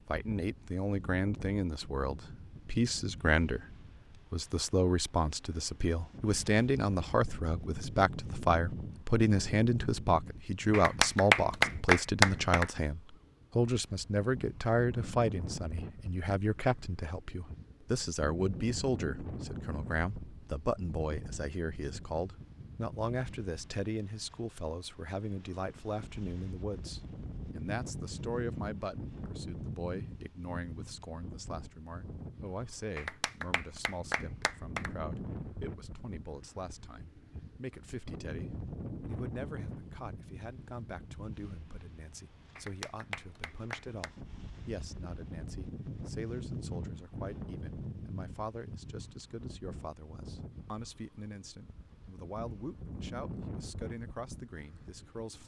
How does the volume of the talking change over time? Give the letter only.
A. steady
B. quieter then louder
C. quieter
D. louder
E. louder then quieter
C.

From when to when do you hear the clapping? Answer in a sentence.
You can hear the clapping from 10.7 to 12.7 s, from 33.0 to 34.9 s and from 42.5 to 44.1 s.